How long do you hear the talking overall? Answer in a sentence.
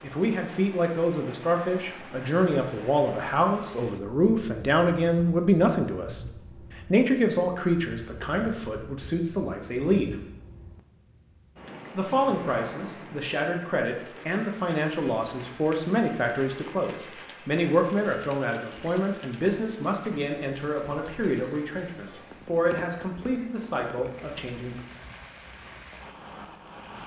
You can hear the talking for 23 seconds altogether.